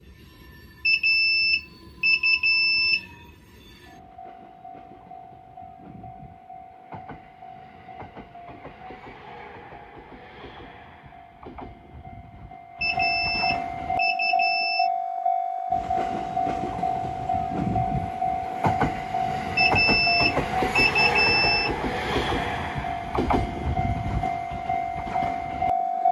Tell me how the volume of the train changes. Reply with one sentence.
The volume of the train goes up.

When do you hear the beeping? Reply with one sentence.
You can hear the beeping from 0.8 to 3.0 s, from 12.8 to 14.9 s and from 19.6 to 21.7 s.